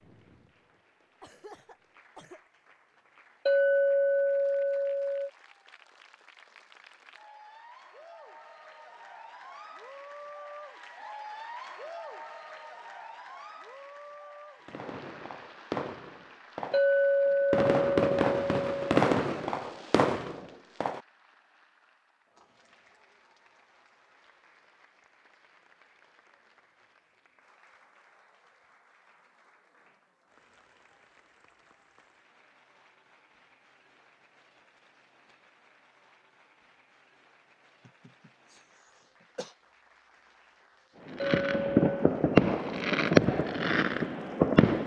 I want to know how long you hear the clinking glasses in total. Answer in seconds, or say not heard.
5 s.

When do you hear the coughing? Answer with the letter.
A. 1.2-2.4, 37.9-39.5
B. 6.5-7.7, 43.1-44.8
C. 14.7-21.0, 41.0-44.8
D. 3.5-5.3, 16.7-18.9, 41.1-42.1
A.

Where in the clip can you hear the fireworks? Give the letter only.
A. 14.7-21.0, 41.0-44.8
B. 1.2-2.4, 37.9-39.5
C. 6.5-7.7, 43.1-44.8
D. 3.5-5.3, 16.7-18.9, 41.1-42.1
A.